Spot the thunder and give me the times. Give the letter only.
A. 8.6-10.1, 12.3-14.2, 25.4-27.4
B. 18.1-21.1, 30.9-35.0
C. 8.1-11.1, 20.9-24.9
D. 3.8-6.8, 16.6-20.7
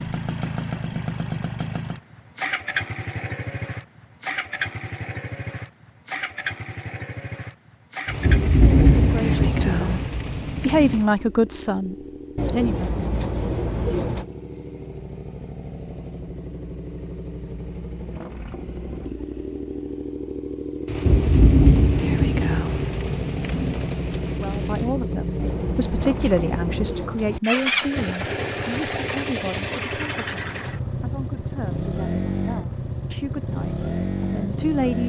C.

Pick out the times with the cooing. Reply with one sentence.
The cooing can be heard from 8.6 to 10.1 s, from 12.3 to 14.2 s and from 25.4 to 27.4 s.